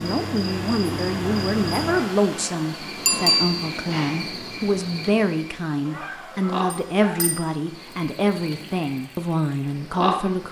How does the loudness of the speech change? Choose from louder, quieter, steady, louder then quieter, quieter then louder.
steady.